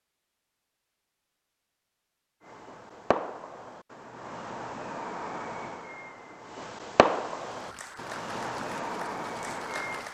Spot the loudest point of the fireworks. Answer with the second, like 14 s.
7 s.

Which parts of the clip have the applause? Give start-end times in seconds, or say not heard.
7.5-10.0.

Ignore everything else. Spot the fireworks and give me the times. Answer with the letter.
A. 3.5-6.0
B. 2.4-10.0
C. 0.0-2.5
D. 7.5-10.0
B.